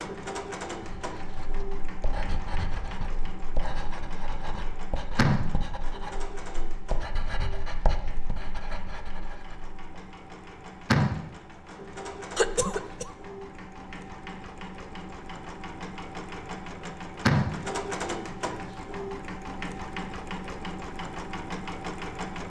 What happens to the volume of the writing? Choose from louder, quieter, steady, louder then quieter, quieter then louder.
steady.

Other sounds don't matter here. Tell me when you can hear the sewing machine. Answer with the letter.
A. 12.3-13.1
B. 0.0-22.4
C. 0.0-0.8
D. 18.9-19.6
B.